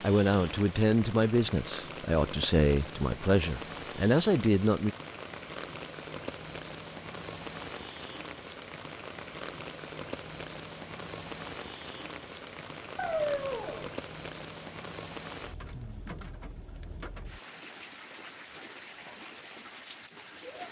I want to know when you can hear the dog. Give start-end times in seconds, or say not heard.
12.9-13.9.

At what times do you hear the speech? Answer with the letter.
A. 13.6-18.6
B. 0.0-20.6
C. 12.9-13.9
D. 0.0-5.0
D.